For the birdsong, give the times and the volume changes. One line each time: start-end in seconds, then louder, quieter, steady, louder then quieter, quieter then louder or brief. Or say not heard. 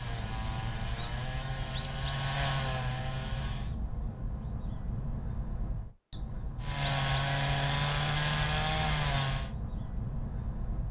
0.0-10.8 steady.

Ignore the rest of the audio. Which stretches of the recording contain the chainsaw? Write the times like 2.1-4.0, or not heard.
0.0-3.8, 6.6-9.5.